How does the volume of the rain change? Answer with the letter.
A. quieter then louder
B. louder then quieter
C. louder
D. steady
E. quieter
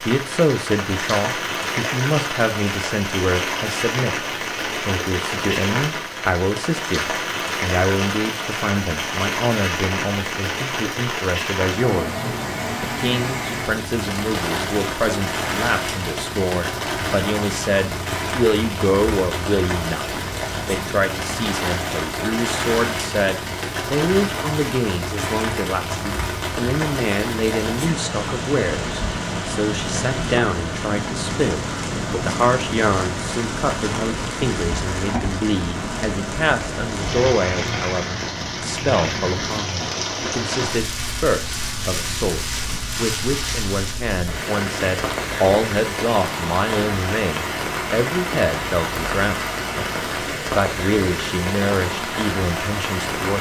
D.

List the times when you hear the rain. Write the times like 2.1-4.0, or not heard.
0.0-53.3.